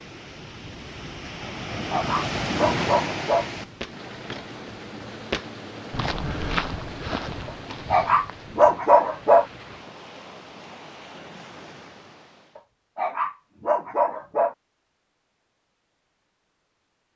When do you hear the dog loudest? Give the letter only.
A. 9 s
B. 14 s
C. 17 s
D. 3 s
A.